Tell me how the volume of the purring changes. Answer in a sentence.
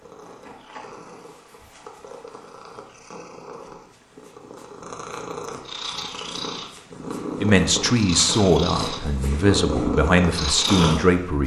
The loudness of the purring goes up.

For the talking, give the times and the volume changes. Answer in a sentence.
You can hear the talking from 7.3 to 11.4 s, at a steady volume.